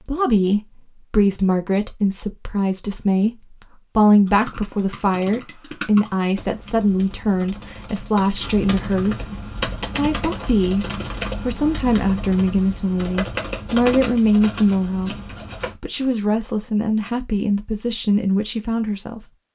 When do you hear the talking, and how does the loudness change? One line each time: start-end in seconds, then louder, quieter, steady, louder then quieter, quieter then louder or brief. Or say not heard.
0.1-19.2 steady.